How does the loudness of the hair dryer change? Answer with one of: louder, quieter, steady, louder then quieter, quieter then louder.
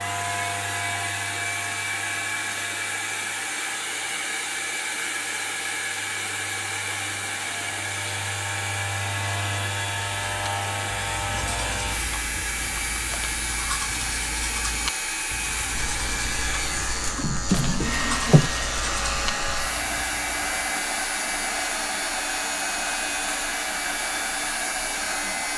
steady.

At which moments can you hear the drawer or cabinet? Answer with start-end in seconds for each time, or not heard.
17.1-18.5.